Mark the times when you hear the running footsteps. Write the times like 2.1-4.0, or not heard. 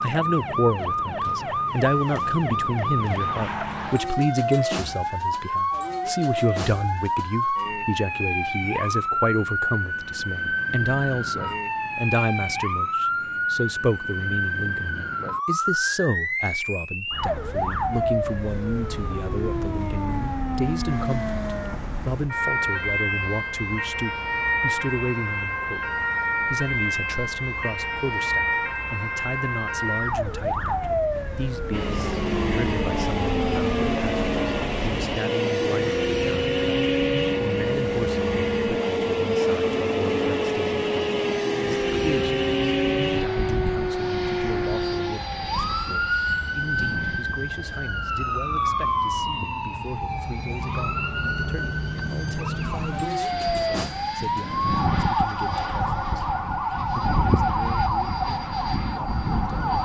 not heard.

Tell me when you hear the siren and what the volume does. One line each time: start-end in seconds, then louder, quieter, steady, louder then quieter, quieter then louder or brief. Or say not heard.
0.0-59.8 steady.